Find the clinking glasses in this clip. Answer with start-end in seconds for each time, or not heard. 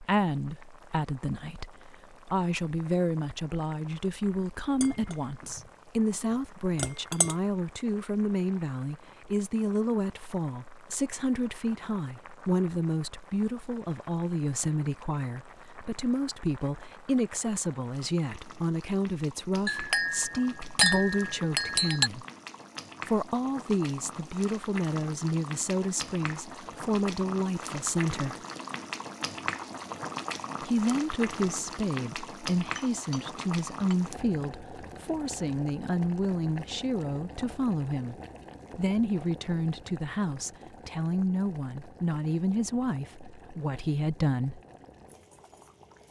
4.8-5.6, 6.8-7.3, 19.6-22.1, 32.8-34.0.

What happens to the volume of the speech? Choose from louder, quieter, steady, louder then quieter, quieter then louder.
steady.